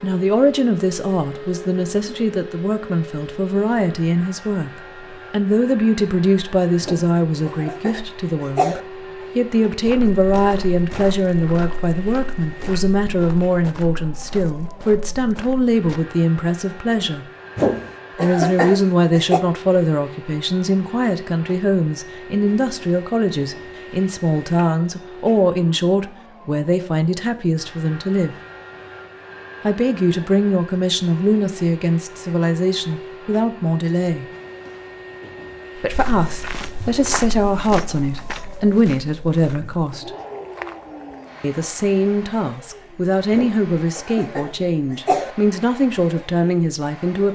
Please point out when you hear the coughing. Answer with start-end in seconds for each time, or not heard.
6.8-8.8, 17.6-19.4, 43.3-45.4.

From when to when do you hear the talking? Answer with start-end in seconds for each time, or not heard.
0.0-4.7, 5.3-17.2, 18.1-28.4, 29.6-34.2, 35.8-40.1, 41.4-47.3.